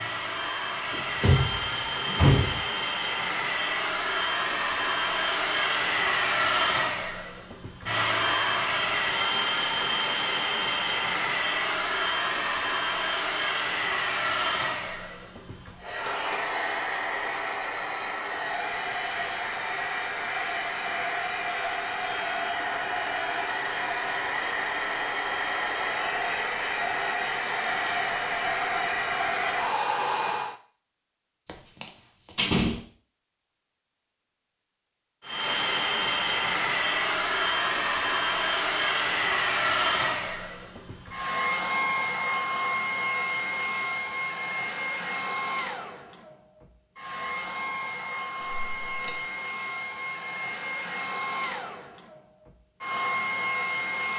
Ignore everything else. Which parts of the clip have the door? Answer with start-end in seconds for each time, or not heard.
0.9-2.6, 31.4-32.8, 48.4-49.2.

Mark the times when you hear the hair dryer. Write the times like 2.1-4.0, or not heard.
0.0-30.6, 35.2-54.1.